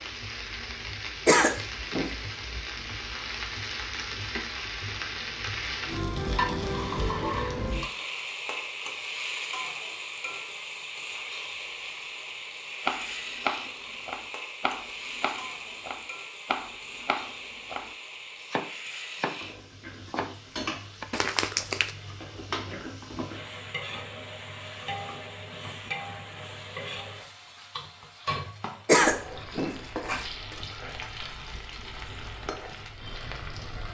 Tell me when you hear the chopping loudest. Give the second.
13 s.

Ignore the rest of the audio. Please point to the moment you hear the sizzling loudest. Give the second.
7 s.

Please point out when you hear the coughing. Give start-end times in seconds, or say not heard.
1.2-2.1, 28.9-30.2.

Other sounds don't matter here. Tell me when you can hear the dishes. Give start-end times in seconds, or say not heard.
not heard.